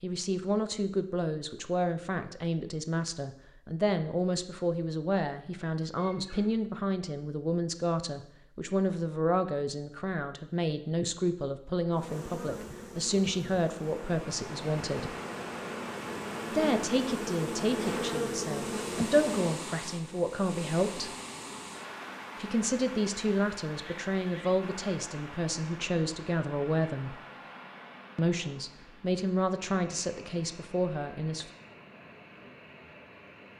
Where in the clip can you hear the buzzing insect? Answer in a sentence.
The buzzing insect can be heard from 11.9 to 19.6 s.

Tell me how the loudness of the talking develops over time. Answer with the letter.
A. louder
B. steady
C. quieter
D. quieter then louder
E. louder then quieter
B.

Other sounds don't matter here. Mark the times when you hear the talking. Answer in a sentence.
The talking can be heard from 0.0 to 15.1 s, from 16.5 to 21.1 s, from 22.4 to 27.1 s and from 28.1 to 31.5 s.